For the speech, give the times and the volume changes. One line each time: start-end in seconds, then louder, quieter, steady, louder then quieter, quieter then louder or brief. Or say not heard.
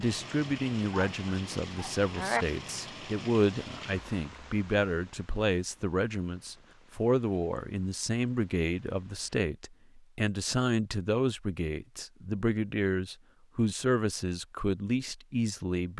0.0-15.9 steady.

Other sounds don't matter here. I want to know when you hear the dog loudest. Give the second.
2 s.